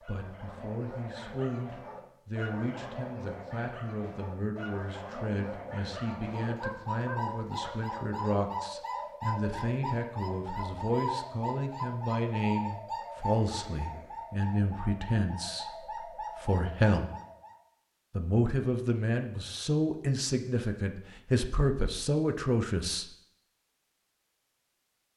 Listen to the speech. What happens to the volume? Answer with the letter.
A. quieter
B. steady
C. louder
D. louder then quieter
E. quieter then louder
C.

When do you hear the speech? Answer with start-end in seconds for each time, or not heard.
0.0-17.1, 18.1-23.1.